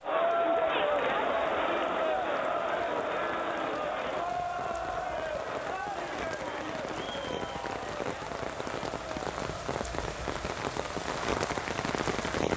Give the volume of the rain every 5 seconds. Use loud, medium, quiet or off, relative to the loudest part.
quiet, medium, loud.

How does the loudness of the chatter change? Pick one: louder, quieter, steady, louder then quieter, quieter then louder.
quieter.